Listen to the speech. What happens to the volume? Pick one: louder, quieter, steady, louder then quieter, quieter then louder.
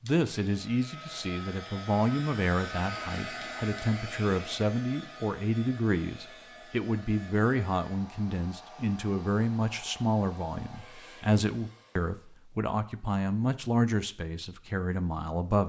steady.